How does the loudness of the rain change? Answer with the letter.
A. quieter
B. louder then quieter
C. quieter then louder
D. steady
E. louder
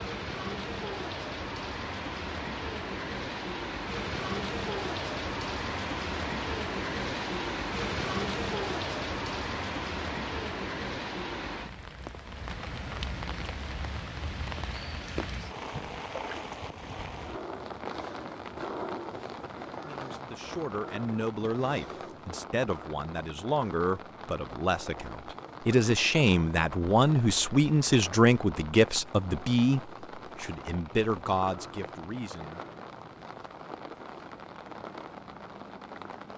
A.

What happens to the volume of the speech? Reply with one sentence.
The loudness of the speech goes up, then down.